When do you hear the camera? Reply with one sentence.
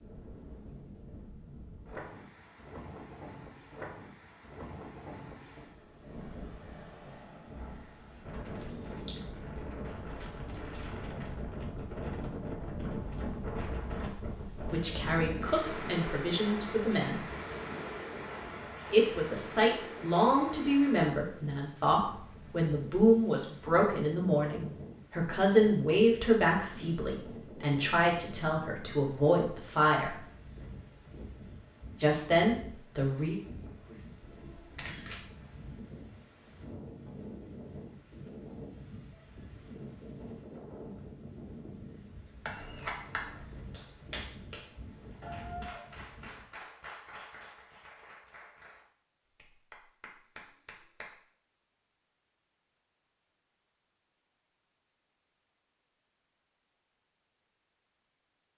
The camera can be heard from 8.3 to 9.2 s, from 34.2 to 35.2 s and from 42.5 to 43.5 s.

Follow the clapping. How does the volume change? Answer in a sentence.
The volume of the clapping goes down.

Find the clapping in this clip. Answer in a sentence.
The clapping can be heard from 43.7 to 51.1 s.